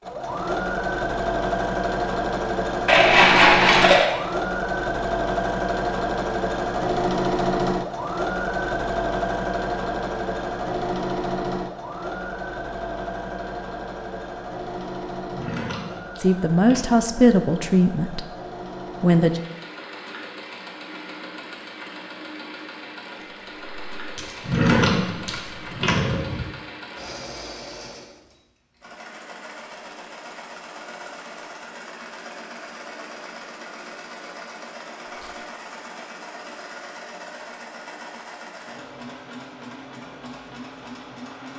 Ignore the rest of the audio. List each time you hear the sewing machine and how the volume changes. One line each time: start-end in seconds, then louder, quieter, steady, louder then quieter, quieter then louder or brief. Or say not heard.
0.0-41.5 quieter.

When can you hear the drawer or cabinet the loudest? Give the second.
25 s.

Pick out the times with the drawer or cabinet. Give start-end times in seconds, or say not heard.
15.3-16.9, 24.4-26.4.